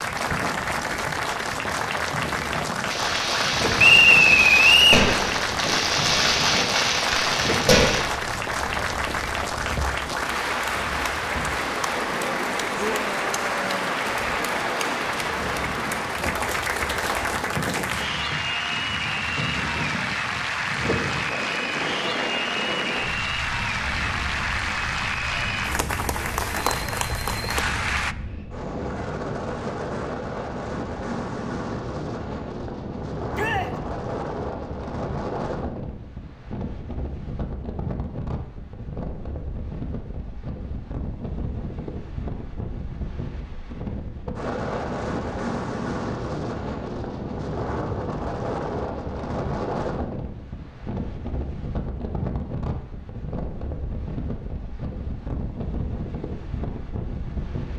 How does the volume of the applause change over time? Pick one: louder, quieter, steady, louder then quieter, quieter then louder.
steady.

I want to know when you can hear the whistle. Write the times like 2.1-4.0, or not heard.
3.8-5.0.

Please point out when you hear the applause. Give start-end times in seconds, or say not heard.
0.0-28.1.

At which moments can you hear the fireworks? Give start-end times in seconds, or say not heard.
2.9-8.1.